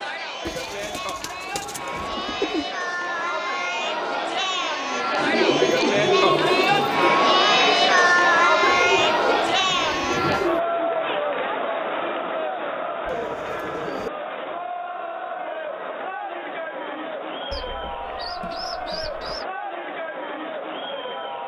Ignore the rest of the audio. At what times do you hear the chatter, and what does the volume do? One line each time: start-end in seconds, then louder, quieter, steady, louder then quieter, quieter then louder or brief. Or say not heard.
0.0-21.4 louder then quieter.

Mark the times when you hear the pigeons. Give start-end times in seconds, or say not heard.
0.5-2.6, 5.2-7.1, 8.6-10.6, 13.1-14.1, 17.5-19.4.